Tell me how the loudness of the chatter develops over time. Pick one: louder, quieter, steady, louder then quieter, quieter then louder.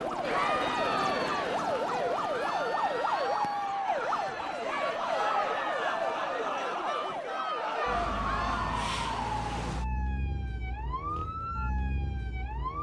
steady.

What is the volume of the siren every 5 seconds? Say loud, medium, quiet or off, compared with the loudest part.
loud, loud, medium.